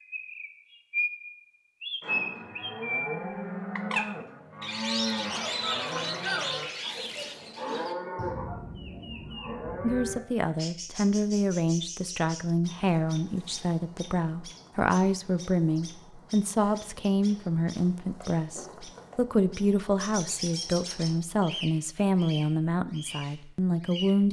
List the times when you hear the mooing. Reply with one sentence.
The mooing can be heard from 2.0 to 10.2 s.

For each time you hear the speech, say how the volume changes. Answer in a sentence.
The speech can be heard from 9.8 to 24.2 s, at a steady volume.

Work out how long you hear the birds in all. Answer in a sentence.
The birds can be heard for 24 seconds in total.